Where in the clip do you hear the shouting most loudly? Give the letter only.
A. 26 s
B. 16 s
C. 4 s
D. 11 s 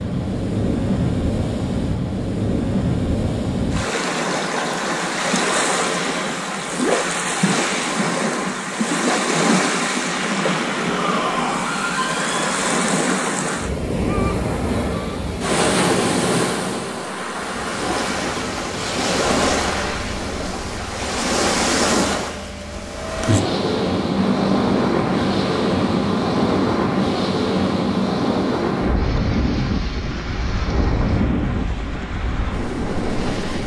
D.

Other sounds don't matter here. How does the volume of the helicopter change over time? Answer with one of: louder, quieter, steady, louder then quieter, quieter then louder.
quieter.